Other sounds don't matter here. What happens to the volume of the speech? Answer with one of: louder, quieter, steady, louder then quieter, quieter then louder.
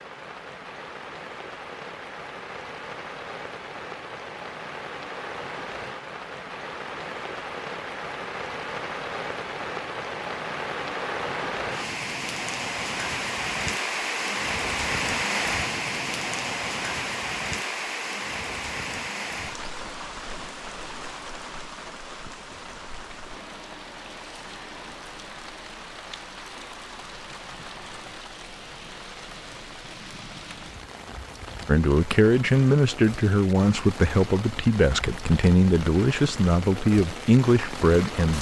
steady.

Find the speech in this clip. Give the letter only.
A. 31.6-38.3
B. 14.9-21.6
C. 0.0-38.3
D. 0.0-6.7
A.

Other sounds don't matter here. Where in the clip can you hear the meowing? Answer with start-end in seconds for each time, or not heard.
not heard.